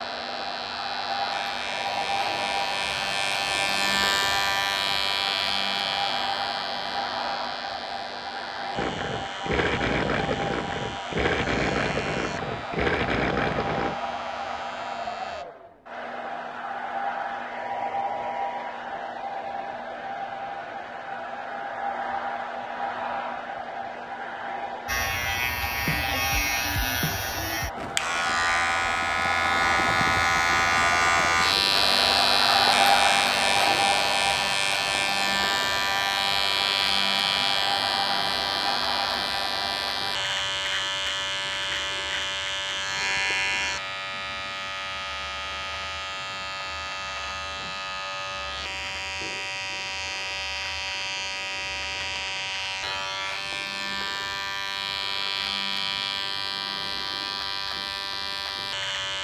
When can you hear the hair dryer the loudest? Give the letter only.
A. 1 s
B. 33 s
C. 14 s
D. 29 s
B.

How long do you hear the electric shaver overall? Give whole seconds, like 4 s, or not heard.
50 s.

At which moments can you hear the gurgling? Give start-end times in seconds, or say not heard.
8.8-13.9.